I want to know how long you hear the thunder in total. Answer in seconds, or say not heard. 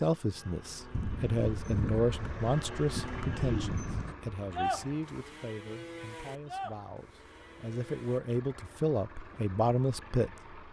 3 s.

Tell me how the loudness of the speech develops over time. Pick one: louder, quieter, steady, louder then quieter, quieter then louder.
quieter then louder.